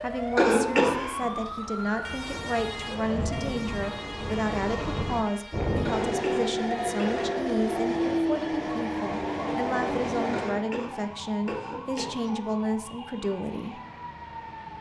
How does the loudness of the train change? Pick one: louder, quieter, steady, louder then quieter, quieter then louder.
louder.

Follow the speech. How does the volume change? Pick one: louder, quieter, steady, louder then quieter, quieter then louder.
steady.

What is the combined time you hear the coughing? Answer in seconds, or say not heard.
4 s.